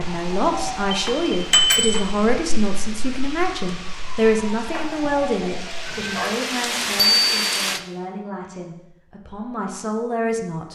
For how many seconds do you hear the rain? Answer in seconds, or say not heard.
8 s.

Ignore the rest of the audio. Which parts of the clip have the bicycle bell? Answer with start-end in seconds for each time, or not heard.
0.9-2.0, 7.0-7.5.